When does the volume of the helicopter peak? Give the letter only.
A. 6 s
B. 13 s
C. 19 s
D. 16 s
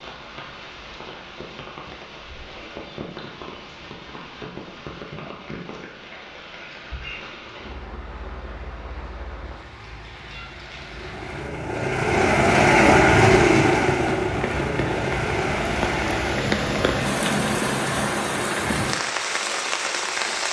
B.